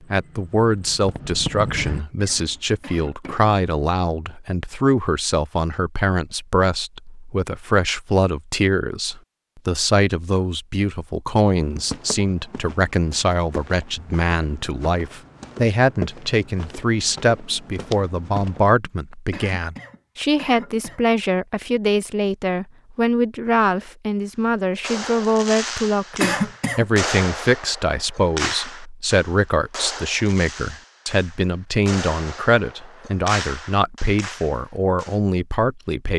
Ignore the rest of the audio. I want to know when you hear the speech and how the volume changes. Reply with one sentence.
You can hear the speech from 0.1 to 36.1 s, at a steady volume.